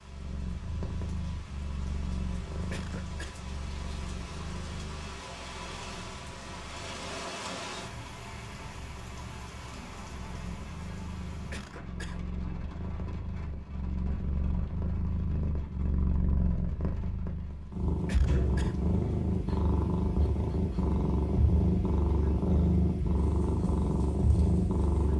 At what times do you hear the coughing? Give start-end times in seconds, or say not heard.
2.7-3.4, 11.5-12.2, 18.1-18.8.